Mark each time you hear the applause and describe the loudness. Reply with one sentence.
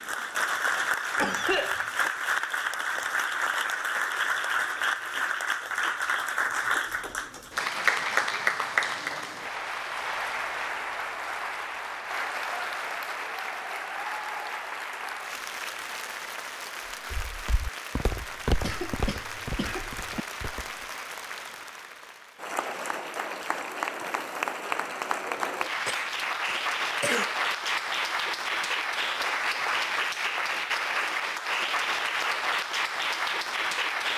The applause can be heard from 0.0 to 34.1 s, getting quieter then louder.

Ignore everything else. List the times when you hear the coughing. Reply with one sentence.
The coughing can be heard from 1.1 to 2.1 s, from 18.6 to 20.2 s and from 25.9 to 27.3 s.